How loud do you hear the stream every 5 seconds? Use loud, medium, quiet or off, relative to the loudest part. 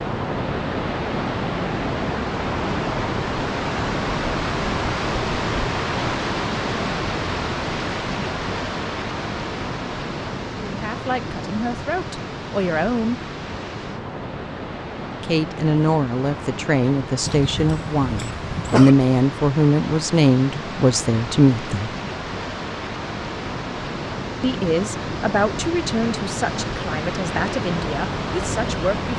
loud, loud, medium, medium, medium, loud.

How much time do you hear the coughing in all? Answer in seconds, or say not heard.
2 s.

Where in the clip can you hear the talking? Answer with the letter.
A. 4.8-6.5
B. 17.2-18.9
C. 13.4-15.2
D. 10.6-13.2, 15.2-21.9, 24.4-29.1
D.